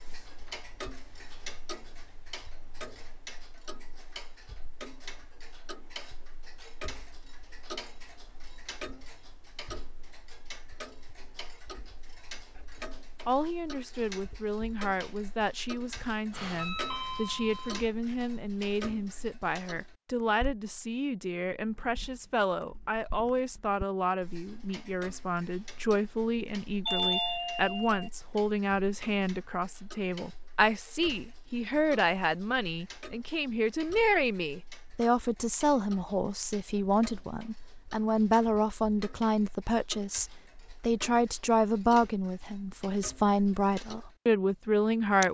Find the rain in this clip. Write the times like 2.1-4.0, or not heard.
not heard.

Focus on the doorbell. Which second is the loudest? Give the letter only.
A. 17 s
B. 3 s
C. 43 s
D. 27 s
D.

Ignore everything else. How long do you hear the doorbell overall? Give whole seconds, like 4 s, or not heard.
3 s.